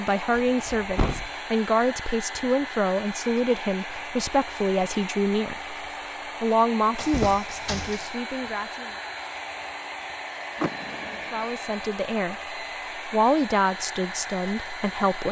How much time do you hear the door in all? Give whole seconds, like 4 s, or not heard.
3 s.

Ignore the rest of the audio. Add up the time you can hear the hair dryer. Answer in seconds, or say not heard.
15 s.